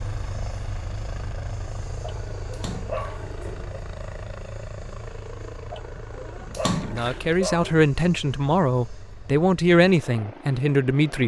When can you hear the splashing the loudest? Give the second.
7 s.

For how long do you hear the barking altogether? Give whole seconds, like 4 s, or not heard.
4 s.